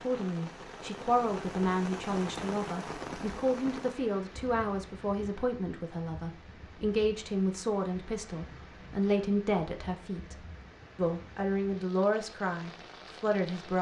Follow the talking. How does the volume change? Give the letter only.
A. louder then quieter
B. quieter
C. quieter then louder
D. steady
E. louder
D.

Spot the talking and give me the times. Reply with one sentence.
The talking can be heard from 0.0 to 13.7 s.